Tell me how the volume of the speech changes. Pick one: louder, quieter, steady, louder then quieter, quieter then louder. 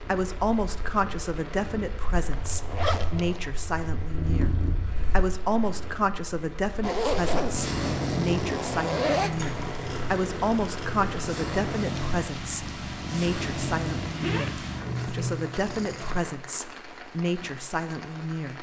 steady.